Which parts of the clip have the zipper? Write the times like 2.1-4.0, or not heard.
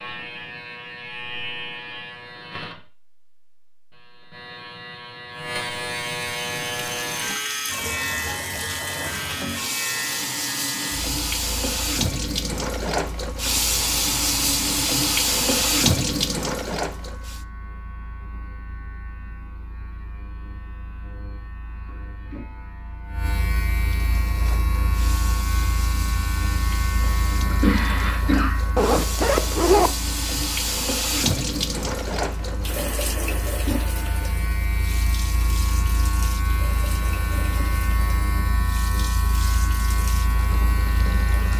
28.8-29.9.